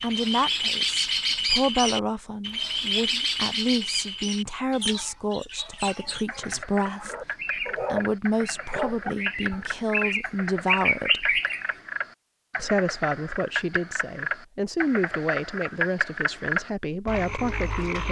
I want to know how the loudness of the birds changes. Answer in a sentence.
The volume of the birds goes down, then up.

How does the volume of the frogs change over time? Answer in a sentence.
The loudness of the frogs goes up.